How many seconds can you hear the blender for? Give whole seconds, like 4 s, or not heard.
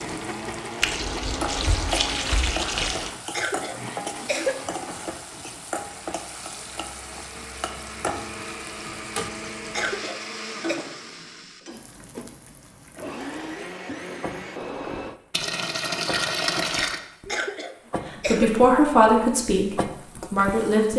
15 s.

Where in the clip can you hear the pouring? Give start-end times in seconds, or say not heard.
0.8-3.1, 15.3-17.0.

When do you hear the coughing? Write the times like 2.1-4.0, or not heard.
3.3-4.7, 9.7-10.8, 17.2-18.6.